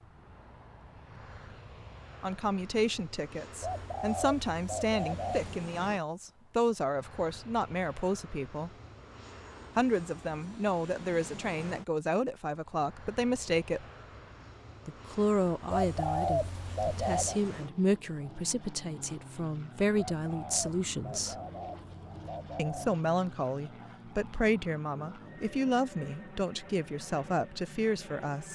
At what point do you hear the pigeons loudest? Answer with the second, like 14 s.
16 s.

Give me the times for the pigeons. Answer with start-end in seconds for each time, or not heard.
3.6-5.5, 15.7-17.4, 20.1-22.9.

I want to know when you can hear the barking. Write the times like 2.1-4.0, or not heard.
not heard.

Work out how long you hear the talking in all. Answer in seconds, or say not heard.
23 s.